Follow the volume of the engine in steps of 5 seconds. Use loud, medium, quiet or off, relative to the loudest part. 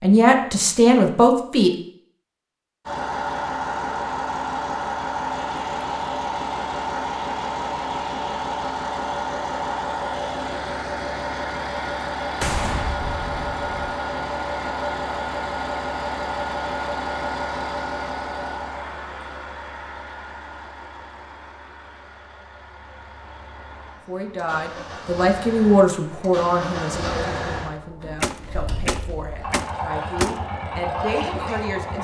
loud, loud, loud, loud, quiet, medium, loud.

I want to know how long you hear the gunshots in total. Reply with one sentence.
You can hear the gunshots for 4 seconds altogether.